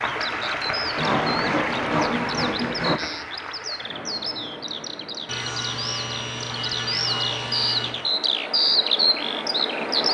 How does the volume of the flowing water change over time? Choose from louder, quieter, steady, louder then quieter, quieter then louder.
quieter then louder.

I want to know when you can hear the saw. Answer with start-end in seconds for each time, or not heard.
0.9-3.0, 5.2-8.1.